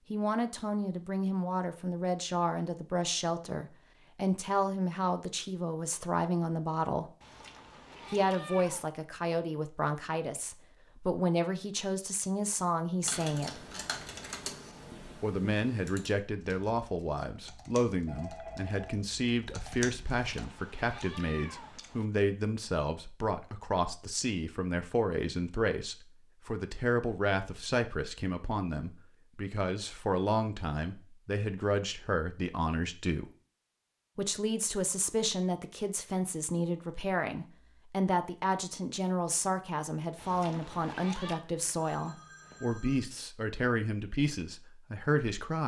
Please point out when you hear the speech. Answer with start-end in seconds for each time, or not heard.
0.1-7.1, 8.1-13.6, 15.2-33.3, 34.1-45.6.